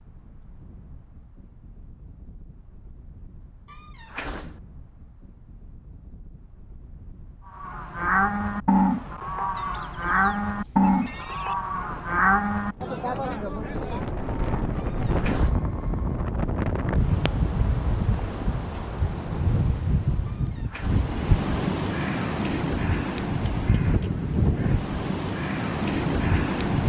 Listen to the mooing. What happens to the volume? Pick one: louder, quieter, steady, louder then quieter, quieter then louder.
quieter.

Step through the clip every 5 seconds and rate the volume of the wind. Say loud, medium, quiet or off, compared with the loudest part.
quiet, quiet, medium, loud, loud, loud.